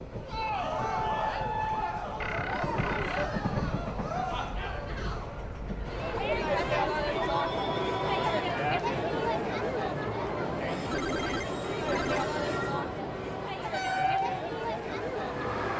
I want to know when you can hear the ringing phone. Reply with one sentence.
The ringing phone can be heard from 2.1 to 3.4 s, from 7.2 to 8.4 s and from 10.9 to 12.2 s.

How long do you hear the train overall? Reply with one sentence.
The train can be heard for 16 seconds in total.